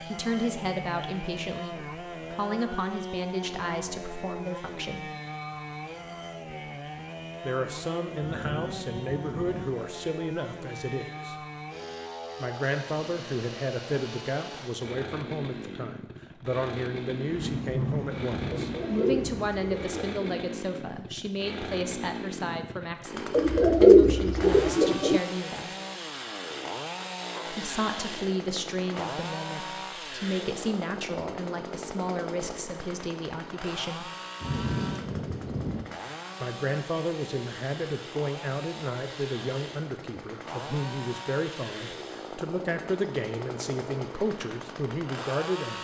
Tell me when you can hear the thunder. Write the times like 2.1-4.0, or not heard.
8.2-9.7, 17.2-19.9, 34.4-35.9.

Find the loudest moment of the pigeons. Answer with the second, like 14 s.
24 s.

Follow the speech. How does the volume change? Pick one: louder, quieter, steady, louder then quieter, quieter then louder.
steady.